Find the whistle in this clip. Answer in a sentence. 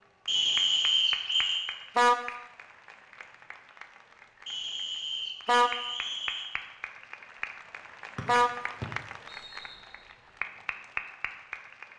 You can hear the whistle from 0.2 to 1.6 s, from 4.5 to 6.5 s and from 8.2 to 9.8 s.